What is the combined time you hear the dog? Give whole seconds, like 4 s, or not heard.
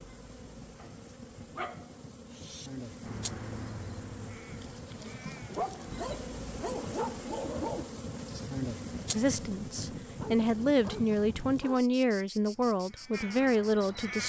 6 s.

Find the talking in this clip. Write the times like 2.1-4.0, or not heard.
9.1-14.2.